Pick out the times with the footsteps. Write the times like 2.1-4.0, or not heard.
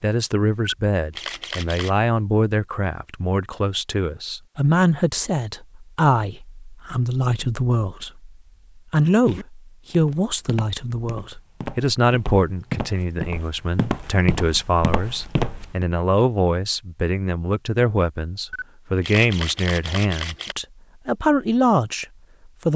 9.2-15.8.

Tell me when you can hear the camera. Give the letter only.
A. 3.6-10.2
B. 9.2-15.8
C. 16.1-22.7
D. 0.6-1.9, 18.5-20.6
D.